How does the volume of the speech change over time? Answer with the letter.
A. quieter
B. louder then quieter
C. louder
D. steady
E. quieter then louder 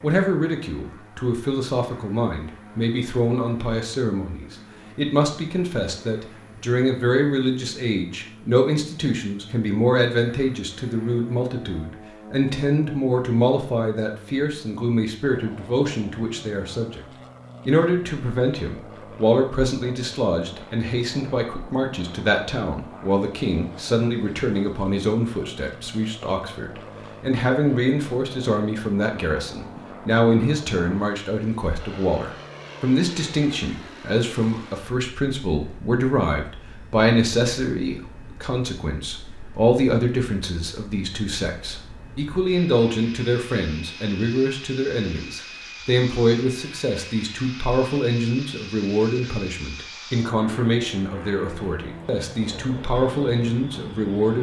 D.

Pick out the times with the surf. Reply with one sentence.
You can't hear the surf here.